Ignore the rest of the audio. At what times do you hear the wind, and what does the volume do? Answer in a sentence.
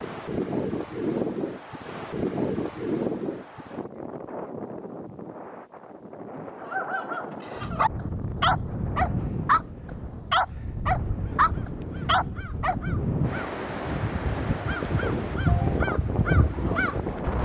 The wind can be heard from 0.0 to 17.4 s, getting quieter then louder.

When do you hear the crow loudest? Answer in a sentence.
The volume of the crow peaks at 16 seconds.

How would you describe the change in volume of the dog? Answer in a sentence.
The loudness of the dog goes up.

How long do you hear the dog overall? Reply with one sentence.
You can hear the dog for 6 seconds altogether.